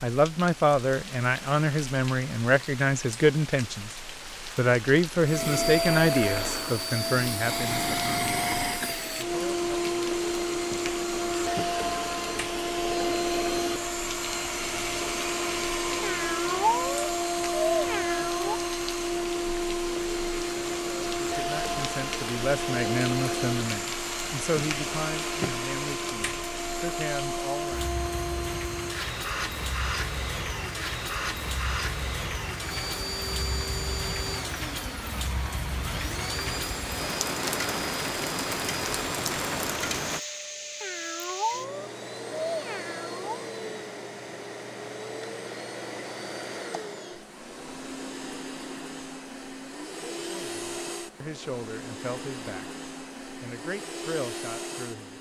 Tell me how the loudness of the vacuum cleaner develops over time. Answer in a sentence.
The volume of the vacuum cleaner goes down.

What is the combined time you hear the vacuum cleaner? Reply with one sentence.
You can hear the vacuum cleaner for 50 seconds altogether.